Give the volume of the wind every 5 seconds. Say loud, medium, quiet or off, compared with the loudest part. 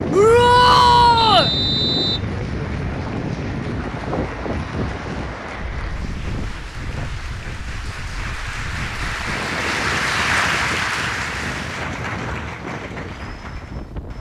loud, medium, medium.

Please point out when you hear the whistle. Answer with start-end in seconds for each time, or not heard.
1.1-2.3.